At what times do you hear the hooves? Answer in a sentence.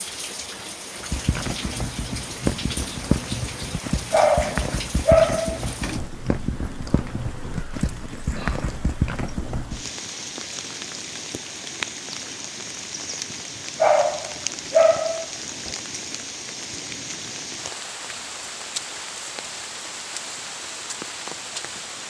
The hooves can be heard from 1.0 to 9.9 s.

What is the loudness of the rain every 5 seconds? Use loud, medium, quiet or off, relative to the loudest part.
loud, medium, loud, loud, loud.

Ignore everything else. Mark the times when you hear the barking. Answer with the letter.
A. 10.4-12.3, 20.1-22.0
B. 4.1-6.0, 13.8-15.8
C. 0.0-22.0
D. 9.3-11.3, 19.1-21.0
B.